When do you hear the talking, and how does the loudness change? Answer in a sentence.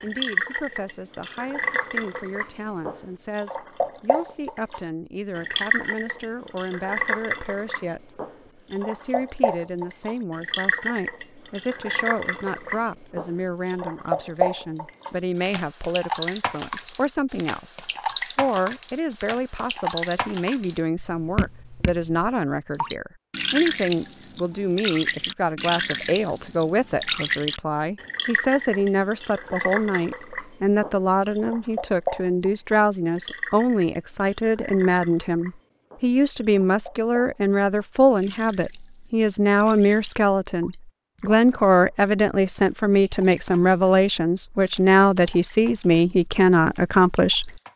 You can hear the talking from 0.0 to 47.5 s, getting louder.